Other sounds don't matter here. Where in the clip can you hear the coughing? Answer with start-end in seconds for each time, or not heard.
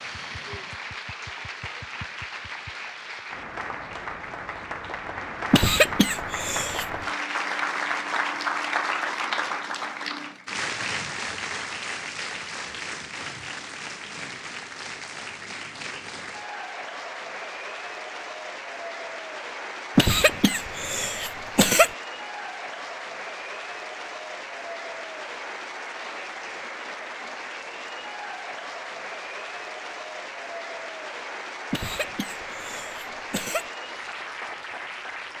5.5-6.8, 19.9-21.9, 31.7-33.6.